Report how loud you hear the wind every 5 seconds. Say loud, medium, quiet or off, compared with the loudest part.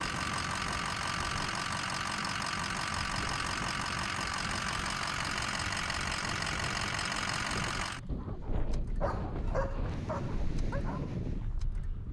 medium, loud, loud.